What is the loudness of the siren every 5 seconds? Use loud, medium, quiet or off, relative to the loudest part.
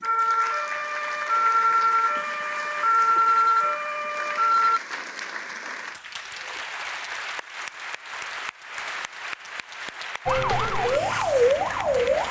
loud, off, loud.